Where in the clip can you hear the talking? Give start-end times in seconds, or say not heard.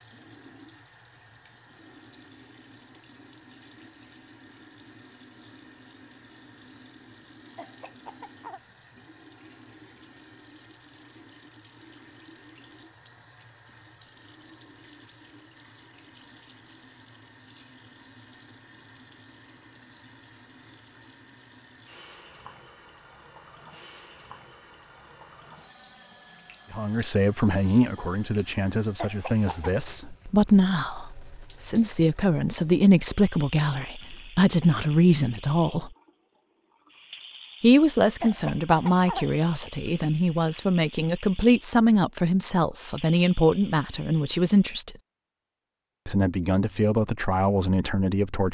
26.7-35.9, 37.6-45.0, 46.0-48.4.